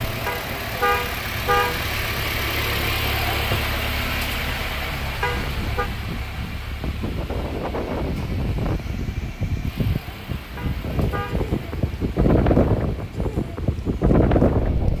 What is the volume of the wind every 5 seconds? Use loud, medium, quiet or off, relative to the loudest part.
quiet, medium, loud.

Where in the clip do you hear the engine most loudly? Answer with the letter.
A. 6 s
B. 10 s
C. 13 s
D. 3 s
D.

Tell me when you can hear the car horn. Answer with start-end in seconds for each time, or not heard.
0.2-1.9, 5.2-5.9, 10.6-11.4.